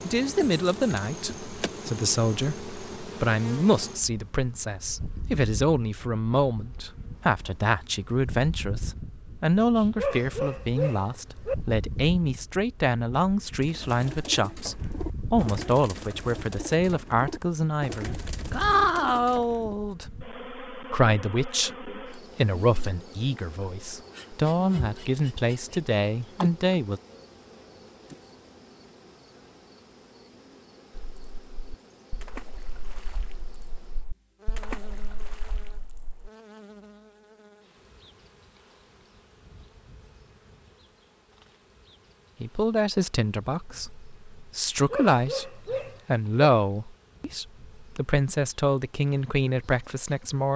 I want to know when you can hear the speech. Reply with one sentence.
You can hear the speech from 0.0 to 27.0 s and from 42.4 to 50.5 s.